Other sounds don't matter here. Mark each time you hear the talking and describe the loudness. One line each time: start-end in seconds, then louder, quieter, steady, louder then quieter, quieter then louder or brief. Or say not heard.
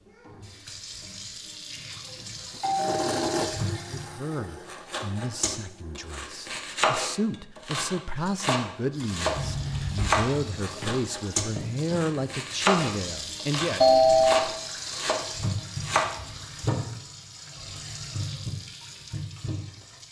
3.9-13.9 louder.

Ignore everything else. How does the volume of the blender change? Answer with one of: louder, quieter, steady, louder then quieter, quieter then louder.
quieter.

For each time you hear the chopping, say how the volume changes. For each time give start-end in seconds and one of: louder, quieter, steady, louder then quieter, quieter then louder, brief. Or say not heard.
4.7-16.1 steady.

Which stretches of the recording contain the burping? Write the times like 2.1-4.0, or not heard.
not heard.